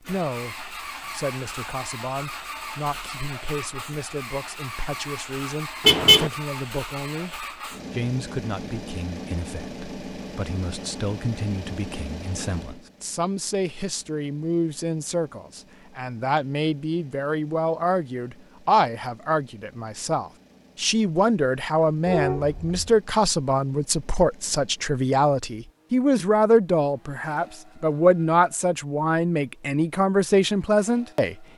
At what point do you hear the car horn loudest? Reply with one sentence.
The loudest moment of the car horn is at 6 seconds.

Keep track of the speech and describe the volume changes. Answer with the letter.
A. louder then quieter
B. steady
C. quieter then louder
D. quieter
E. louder
E.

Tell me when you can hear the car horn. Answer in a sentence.
The car horn can be heard from 5.8 to 6.3 s and from 22.1 to 22.8 s.